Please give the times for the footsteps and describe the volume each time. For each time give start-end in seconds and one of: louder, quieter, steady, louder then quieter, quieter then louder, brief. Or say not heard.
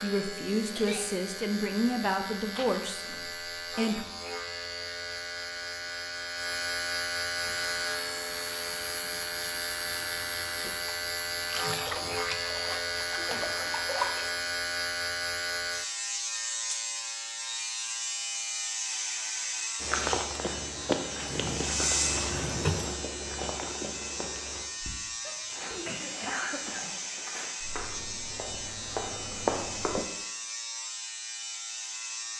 19.8-30.1 quieter then louder.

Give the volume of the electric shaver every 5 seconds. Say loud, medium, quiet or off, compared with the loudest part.
medium, loud, loud, loud, loud, medium, medium.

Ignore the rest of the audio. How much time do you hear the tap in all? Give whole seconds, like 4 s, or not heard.
9 s.